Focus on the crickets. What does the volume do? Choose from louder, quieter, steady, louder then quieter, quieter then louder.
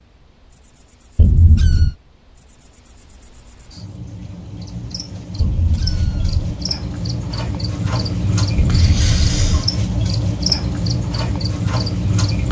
louder.